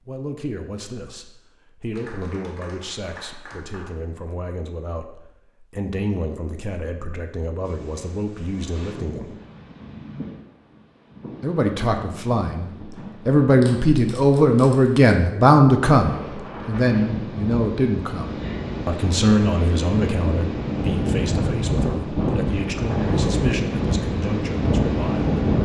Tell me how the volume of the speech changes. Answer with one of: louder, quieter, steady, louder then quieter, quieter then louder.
louder then quieter.